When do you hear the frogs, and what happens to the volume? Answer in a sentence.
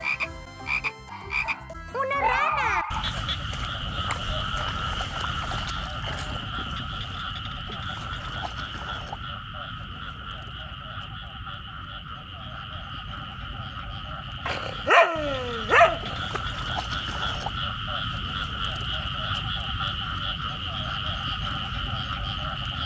The frogs can be heard from 0.0 to 22.8 s, getting quieter then louder.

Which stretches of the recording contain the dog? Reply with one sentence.
You can hear the dog from 1.1 to 3.2 s and from 14.4 to 16.4 s.